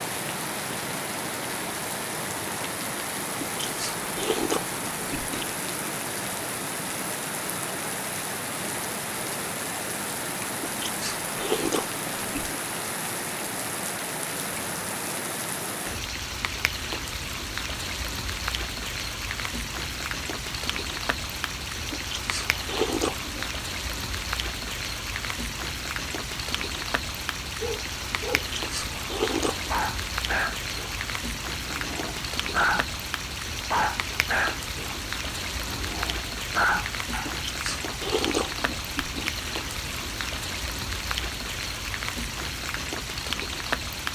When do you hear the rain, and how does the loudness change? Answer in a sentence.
You can hear the rain from 0.0 to 44.1 s, at a steady volume.